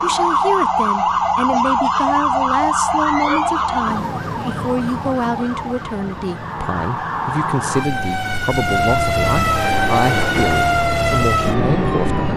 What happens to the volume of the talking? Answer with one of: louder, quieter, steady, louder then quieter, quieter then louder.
steady.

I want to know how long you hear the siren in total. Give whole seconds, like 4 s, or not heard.
12 s.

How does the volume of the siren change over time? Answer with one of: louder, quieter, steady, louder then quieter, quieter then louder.
quieter then louder.